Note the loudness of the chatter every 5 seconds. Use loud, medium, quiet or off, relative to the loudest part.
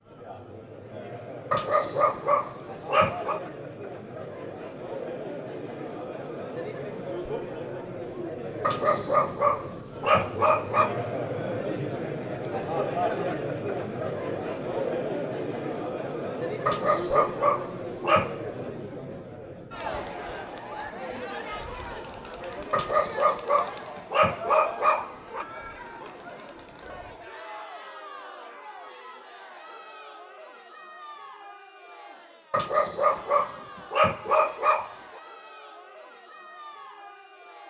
medium, medium, loud, loud, medium, quiet, quiet, quiet.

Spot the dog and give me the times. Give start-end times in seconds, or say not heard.
1.5-3.4, 8.6-10.9, 16.6-18.3, 22.7-25.4, 32.5-35.2.